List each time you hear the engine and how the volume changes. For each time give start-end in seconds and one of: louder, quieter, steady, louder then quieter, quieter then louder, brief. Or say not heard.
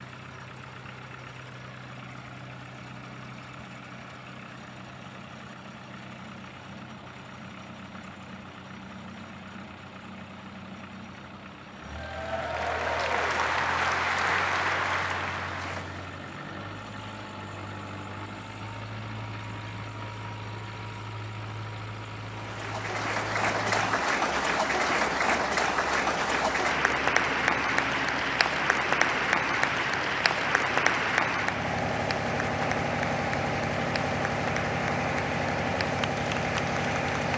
0.0-37.3 louder.